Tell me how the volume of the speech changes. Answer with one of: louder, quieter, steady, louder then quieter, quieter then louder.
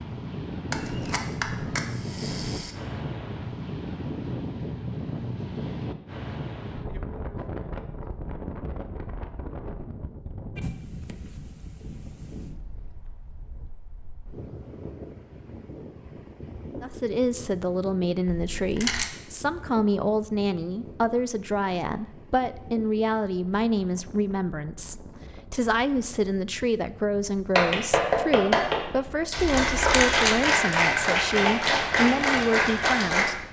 steady.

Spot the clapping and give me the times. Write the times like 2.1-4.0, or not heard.
27.6-33.2.